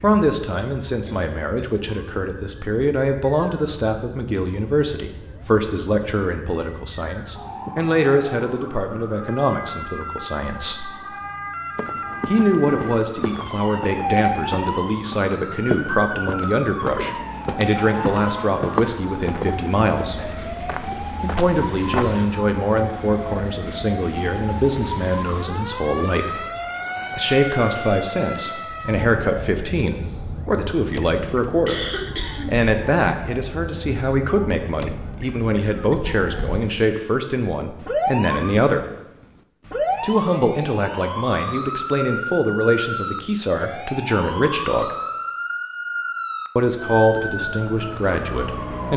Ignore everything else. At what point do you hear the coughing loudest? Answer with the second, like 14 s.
32 s.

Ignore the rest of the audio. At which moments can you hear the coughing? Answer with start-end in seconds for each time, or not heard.
1.1-1.7, 31.6-32.6.